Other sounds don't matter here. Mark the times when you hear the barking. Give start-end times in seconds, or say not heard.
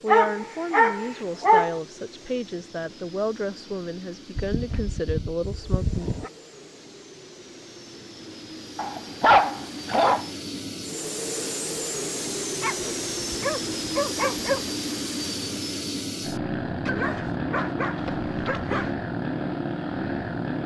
0.1-1.8, 4.3-6.3, 8.8-10.3, 12.6-14.7, 16.9-18.9.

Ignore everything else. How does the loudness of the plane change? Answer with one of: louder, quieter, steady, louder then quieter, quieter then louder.
louder.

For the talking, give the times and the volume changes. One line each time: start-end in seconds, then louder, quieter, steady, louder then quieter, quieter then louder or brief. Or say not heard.
0.0-6.1 steady.